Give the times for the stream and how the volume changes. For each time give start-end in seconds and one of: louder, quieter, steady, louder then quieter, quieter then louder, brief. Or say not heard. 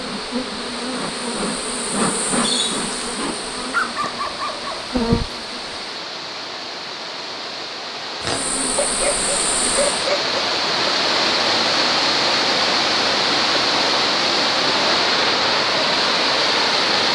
0.0-17.1 louder.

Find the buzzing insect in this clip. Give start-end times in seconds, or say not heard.
0.0-6.0, 8.2-10.1.